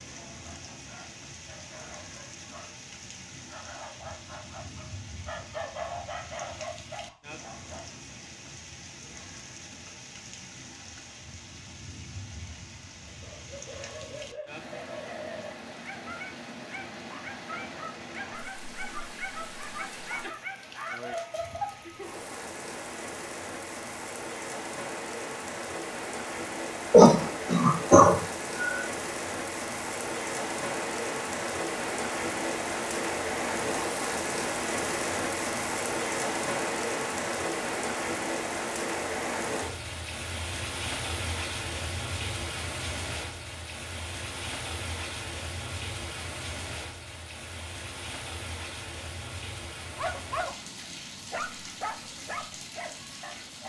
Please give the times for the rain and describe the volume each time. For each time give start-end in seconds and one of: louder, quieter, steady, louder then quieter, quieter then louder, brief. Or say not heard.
0.0-53.6 louder then quieter.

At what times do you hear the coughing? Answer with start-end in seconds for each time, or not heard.
26.9-28.9.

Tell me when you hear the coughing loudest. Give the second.
27 s.